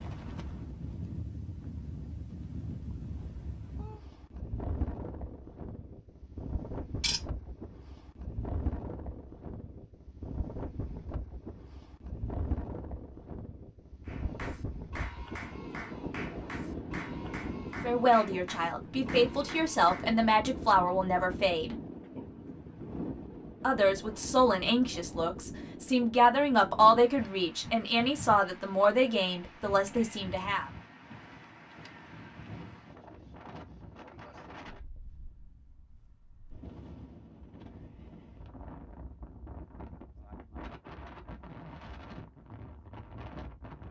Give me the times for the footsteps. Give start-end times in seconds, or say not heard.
not heard.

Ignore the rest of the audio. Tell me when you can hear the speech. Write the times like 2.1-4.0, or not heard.
17.8-21.8, 23.6-30.7.